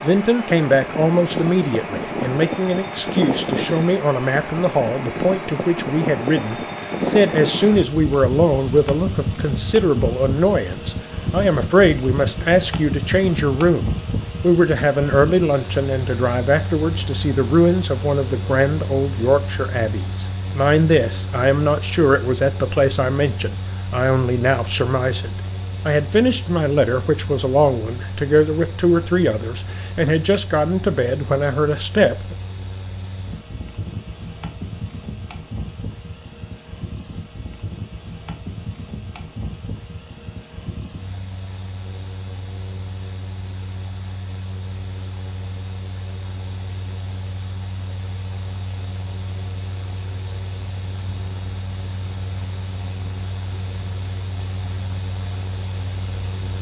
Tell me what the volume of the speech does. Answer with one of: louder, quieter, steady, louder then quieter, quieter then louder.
steady.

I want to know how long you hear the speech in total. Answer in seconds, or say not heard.
32 s.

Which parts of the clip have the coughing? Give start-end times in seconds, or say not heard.
not heard.